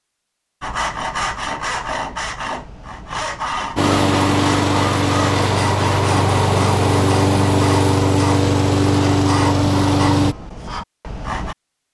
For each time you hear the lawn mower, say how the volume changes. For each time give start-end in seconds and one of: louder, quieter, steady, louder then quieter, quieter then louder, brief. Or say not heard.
3.8-10.3 steady.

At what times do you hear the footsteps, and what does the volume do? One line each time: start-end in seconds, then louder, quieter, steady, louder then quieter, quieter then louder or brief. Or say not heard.
not heard.